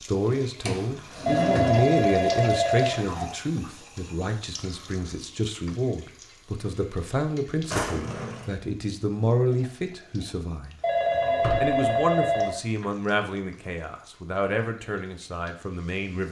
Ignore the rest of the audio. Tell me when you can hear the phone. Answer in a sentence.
You can hear the phone from 1.2 to 3.2 s and from 10.8 to 12.6 s.